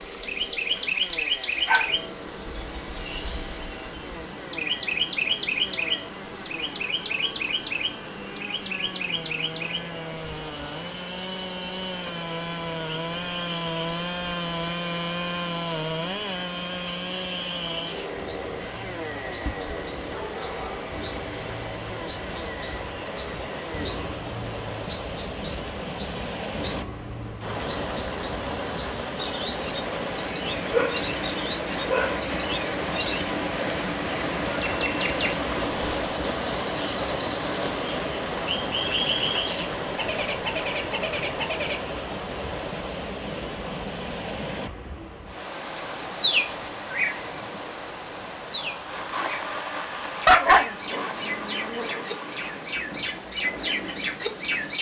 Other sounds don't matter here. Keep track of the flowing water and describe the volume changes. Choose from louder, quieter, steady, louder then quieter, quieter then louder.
louder then quieter.